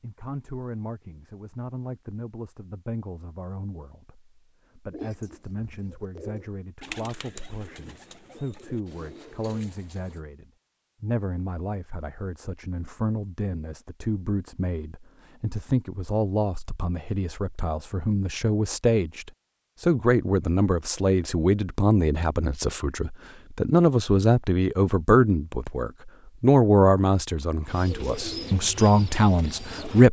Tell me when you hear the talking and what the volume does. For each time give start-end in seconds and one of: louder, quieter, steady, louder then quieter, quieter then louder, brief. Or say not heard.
0.0-30.0 louder.